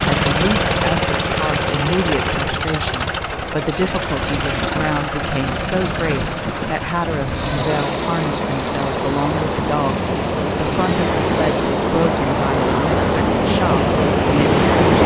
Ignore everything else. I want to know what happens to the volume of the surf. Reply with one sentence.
The volume of the surf goes up.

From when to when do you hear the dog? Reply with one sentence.
You can't hear the dog here.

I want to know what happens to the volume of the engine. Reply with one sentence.
The volume of the engine goes down.